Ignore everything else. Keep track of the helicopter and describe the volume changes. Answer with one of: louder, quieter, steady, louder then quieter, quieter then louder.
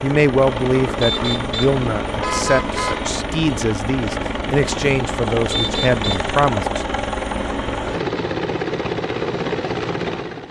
steady.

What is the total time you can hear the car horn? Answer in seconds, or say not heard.
3 s.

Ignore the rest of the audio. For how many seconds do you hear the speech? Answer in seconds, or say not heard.
7 s.